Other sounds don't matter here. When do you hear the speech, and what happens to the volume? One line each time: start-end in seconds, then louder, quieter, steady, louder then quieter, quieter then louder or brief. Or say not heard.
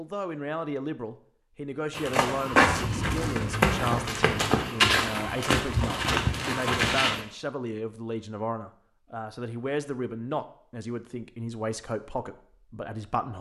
0.0-13.3 steady.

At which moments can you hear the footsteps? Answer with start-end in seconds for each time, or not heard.
1.9-7.2.